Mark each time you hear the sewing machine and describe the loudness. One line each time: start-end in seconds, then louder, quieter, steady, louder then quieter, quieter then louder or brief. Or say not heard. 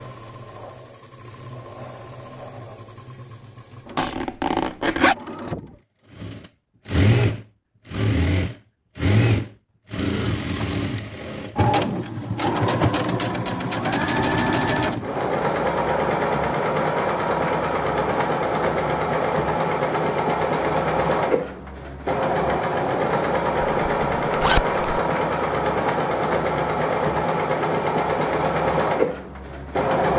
0.0-30.1 louder.